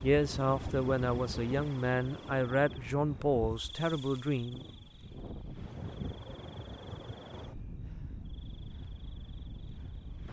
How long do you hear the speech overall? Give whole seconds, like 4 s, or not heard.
5 s.